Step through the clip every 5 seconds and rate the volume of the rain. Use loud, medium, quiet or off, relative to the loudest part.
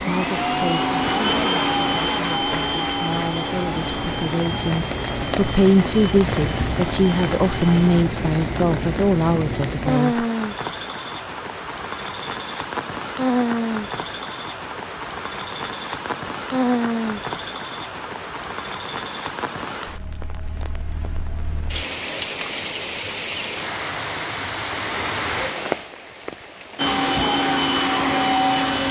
medium, loud, loud, loud, loud, loud.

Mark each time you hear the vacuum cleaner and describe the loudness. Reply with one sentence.
The vacuum cleaner can be heard from 0.0 to 8.1 s, getting quieter; and briefly from 26.8 to 28.8 s.